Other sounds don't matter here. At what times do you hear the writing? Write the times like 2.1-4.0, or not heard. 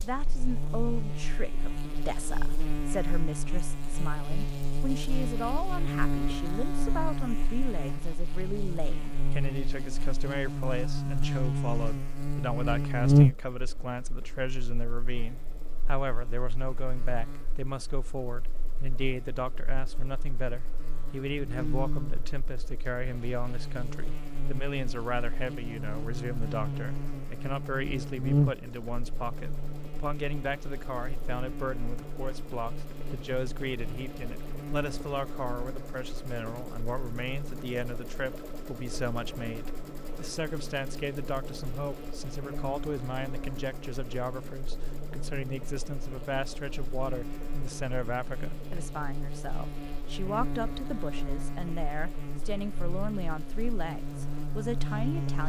not heard.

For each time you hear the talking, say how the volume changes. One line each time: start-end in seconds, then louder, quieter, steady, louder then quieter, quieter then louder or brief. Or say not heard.
0.0-55.4 steady.